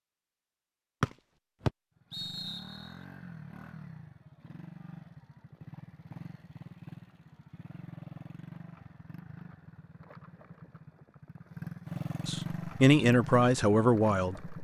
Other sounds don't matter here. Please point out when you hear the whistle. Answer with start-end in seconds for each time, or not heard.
1.0-2.9.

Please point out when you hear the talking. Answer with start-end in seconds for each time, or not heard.
12.2-14.6.